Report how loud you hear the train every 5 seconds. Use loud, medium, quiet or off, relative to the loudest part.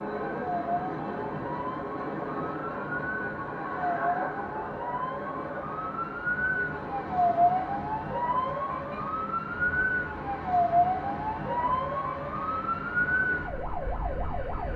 loud, medium, medium.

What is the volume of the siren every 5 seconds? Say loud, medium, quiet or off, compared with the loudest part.
medium, loud, loud.